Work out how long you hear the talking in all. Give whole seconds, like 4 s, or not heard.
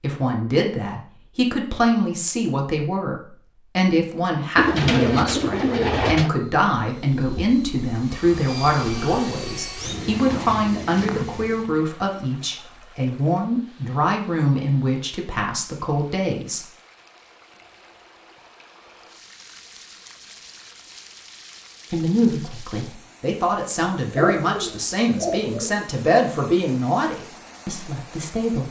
23 s.